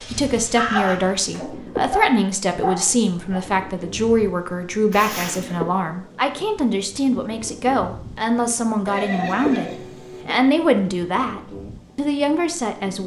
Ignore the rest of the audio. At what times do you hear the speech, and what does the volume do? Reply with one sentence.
You can hear the speech from 0.1 to 13.0 s, at a steady volume.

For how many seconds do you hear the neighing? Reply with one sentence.
You can hear the neighing for 3 seconds altogether.